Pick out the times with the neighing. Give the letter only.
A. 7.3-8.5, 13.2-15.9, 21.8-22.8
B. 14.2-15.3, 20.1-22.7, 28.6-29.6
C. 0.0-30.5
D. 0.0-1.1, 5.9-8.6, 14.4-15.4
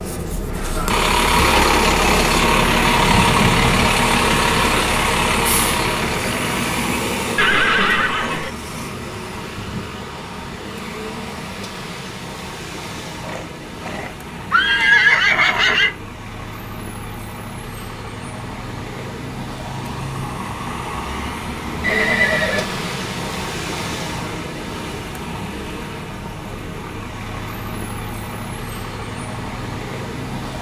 A.